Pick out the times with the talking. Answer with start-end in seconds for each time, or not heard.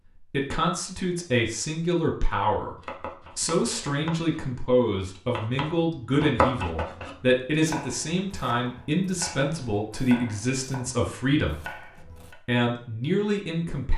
0.1-2.8, 3.4-13.9.